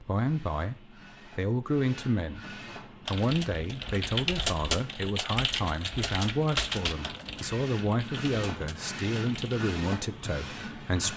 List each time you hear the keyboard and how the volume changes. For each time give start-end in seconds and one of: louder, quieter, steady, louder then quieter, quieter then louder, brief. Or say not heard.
3.0-9.7 quieter.